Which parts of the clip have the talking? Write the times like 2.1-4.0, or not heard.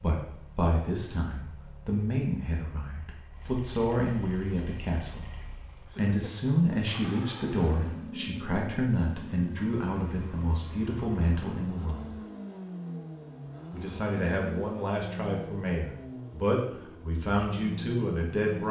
0.0-5.2, 6.0-12.1, 13.7-18.6.